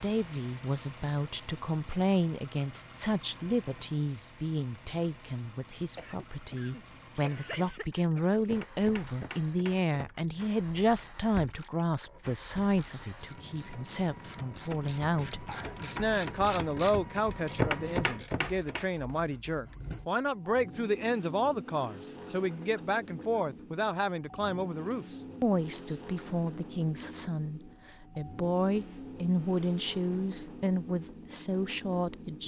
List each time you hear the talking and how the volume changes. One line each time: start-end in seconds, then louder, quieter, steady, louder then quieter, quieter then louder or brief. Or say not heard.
0.0-32.4 steady.